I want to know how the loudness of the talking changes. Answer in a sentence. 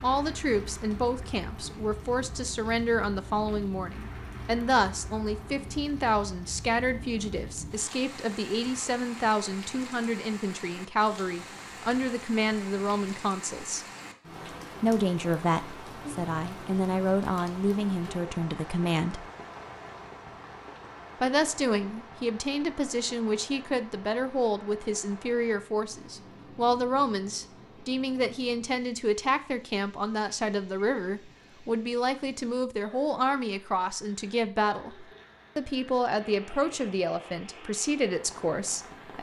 The volume of the talking stays about the same.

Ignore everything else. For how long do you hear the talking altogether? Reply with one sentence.
The talking can be heard for 36 seconds in total.